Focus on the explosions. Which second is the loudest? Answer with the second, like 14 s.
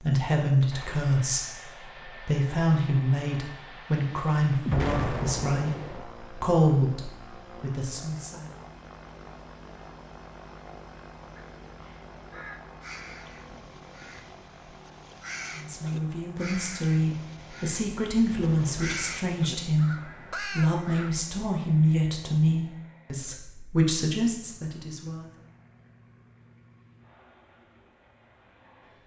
5 s.